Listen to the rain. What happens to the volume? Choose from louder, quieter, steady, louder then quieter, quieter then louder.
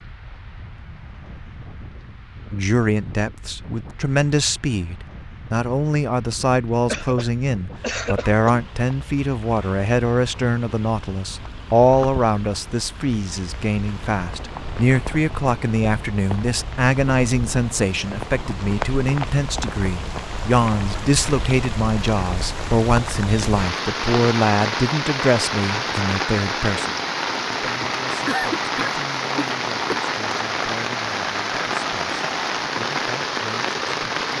louder.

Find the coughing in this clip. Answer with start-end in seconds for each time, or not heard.
6.8-8.7, 27.8-30.0.